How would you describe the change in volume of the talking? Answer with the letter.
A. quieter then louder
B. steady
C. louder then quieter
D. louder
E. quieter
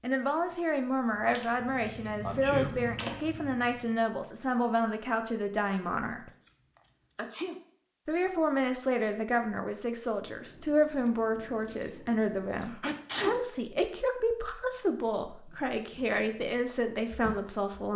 B.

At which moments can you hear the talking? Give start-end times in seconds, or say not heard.
0.0-6.3, 8.1-17.9.